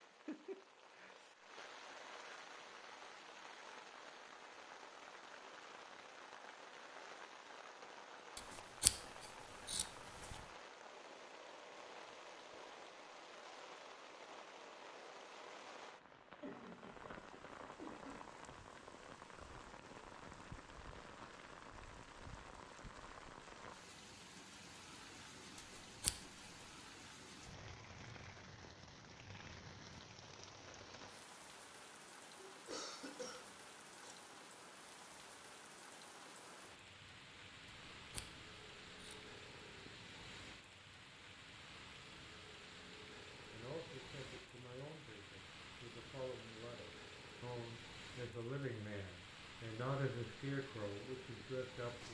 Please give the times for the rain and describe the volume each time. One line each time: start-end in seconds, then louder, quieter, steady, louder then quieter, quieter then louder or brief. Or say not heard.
0.0-52.0 steady.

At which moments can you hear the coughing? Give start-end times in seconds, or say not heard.
16.4-18.2, 32.4-34.4.